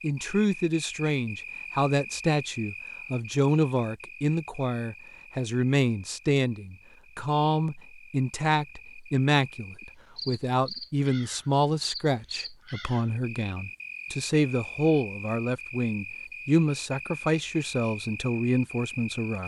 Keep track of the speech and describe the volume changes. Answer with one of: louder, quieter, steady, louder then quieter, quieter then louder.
steady.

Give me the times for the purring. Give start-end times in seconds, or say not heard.
not heard.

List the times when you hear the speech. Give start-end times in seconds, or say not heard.
0.0-19.4.